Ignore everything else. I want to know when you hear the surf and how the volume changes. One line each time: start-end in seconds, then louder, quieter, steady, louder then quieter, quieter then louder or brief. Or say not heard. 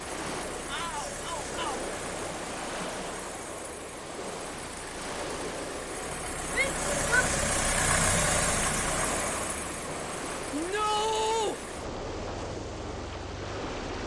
0.0-14.0 steady.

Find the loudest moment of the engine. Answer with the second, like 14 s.
8 s.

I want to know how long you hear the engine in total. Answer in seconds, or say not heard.
14 s.